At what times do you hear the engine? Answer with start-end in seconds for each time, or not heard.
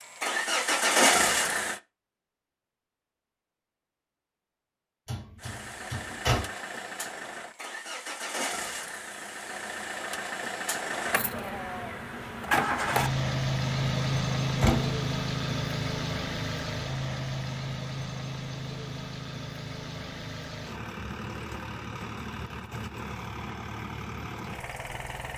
0.0-1.8, 5.3-25.3.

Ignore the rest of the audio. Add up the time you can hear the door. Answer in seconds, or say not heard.
2 s.